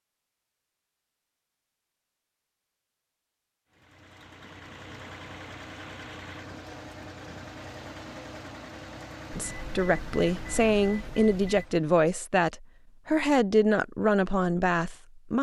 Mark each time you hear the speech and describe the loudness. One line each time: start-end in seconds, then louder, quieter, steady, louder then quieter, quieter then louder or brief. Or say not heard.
9.3-15.3 steady.